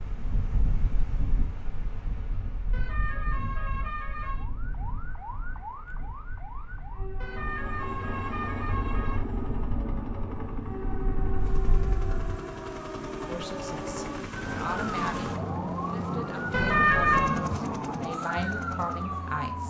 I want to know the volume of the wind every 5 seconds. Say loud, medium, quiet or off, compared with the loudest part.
loud, medium, loud, off.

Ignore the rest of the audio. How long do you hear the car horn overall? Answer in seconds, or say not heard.
5 s.